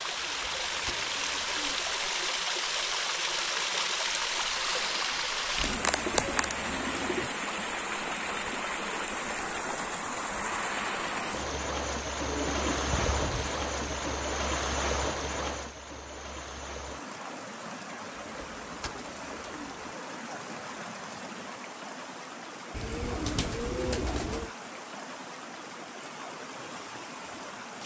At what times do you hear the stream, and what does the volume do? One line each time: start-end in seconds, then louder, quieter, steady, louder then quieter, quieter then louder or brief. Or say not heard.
0.0-27.8 quieter.